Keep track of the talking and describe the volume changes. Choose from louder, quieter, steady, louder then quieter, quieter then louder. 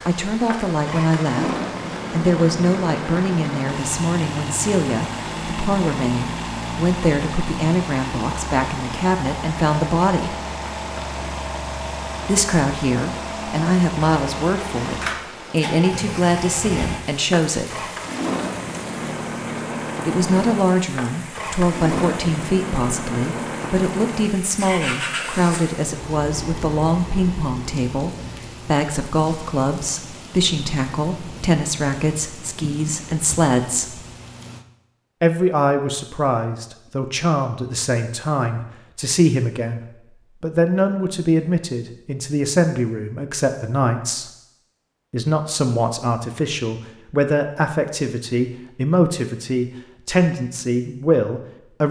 steady.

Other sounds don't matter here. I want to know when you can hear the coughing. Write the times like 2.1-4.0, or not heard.
not heard.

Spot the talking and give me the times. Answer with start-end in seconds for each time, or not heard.
0.1-10.4, 12.2-17.9, 20.1-34.0, 35.2-39.8, 40.4-44.3, 45.1-51.8.